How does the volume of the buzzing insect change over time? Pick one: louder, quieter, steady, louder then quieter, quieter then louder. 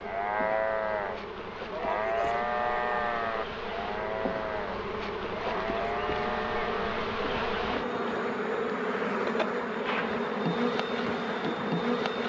louder.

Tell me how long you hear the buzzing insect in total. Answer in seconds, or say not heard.
12 s.